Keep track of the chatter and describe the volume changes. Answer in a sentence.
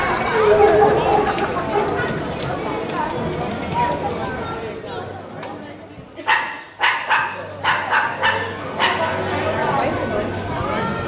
The loudness of the chatter goes down, then up.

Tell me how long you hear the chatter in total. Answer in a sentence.
The chatter can be heard for 11 seconds in total.